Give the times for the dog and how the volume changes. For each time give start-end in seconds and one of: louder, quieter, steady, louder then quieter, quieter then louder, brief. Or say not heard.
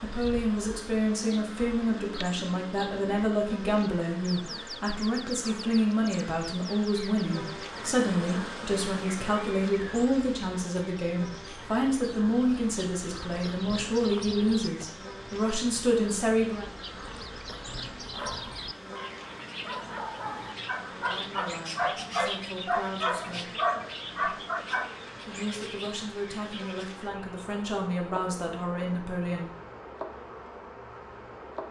18.1-24.9 louder.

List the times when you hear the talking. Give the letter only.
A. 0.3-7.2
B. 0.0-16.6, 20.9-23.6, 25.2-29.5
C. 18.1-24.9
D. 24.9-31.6
B.